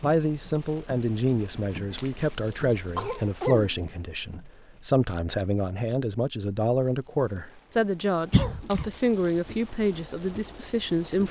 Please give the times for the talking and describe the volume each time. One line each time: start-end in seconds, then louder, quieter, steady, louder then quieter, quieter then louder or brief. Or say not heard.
0.0-11.2 steady.